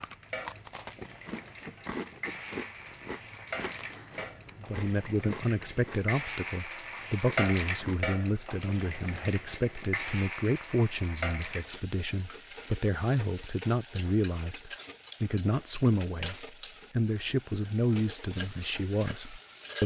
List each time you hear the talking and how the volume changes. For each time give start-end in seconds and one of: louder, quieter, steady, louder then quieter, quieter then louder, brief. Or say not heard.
4.6-19.8 steady.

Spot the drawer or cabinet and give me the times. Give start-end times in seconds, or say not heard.
not heard.